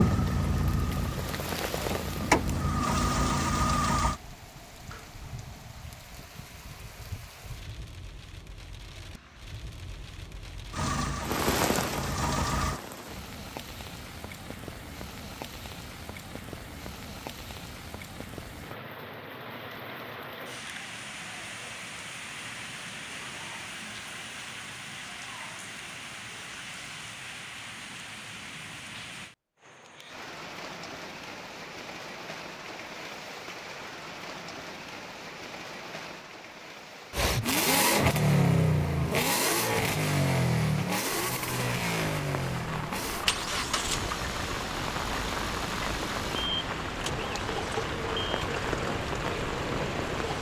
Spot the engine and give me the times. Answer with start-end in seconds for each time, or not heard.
0.0-4.2, 10.7-12.8, 37.1-50.3.